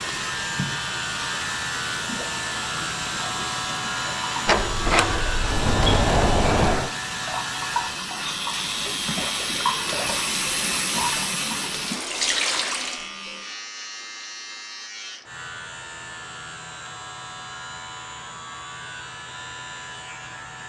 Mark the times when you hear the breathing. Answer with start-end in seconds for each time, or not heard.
not heard.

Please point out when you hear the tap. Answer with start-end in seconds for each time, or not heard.
0.0-13.1.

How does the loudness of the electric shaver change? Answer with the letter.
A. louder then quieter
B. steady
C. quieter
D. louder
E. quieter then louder
C.